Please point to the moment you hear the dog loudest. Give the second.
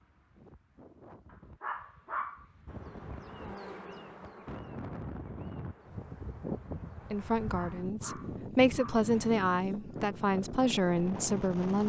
2 s.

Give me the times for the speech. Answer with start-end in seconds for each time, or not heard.
7.1-11.8.